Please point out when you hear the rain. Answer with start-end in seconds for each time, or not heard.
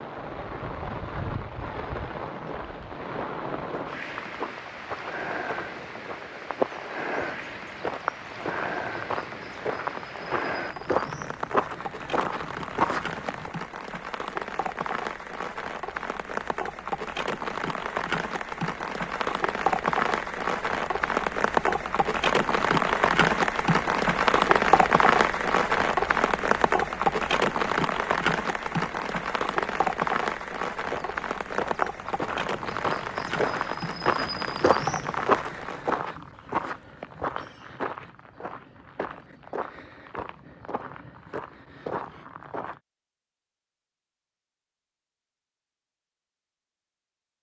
0.0-36.1.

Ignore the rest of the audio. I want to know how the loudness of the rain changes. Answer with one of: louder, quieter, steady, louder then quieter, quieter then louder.
louder then quieter.